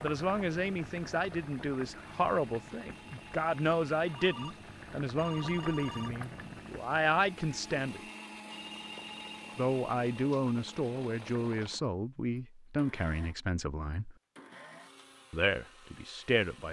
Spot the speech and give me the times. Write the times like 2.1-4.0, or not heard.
0.0-8.0, 9.6-14.2, 15.3-16.6.